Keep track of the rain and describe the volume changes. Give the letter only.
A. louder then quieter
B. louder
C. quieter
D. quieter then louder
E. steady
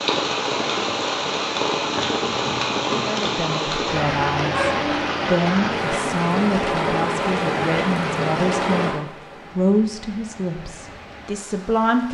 C.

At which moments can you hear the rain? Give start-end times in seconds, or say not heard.
0.0-12.0.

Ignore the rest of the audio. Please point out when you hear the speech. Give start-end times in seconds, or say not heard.
3.0-4.7, 5.3-12.0.